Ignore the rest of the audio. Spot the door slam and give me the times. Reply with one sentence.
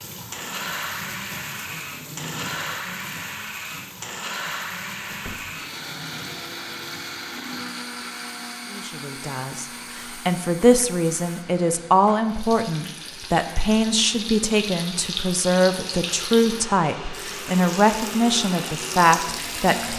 The door slam can be heard from 5.0 to 5.6 s.